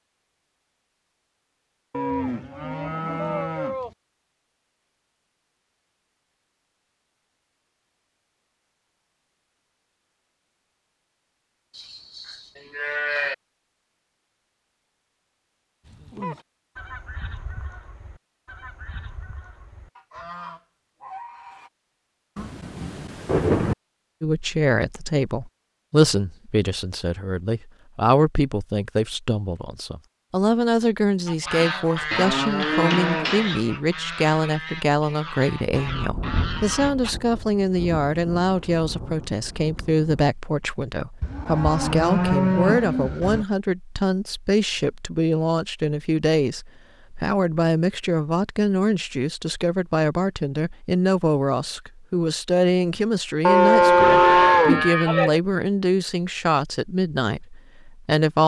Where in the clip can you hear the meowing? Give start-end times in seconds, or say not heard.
not heard.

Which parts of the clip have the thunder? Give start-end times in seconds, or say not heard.
22.4-23.8, 35.7-40.3.